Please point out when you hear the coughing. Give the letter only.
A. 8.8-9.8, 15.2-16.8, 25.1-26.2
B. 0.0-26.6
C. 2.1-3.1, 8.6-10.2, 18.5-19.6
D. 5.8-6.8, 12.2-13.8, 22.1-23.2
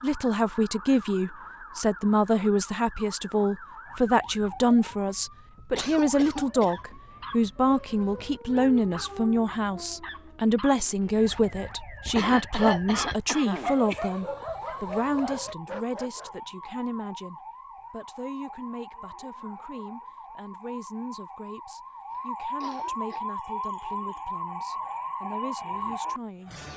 D.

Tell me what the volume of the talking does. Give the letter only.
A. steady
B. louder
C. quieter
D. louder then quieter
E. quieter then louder
C.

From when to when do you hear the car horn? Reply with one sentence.
You can't hear the car horn here.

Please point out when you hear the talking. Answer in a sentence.
The talking can be heard from 0.0 to 26.6 s.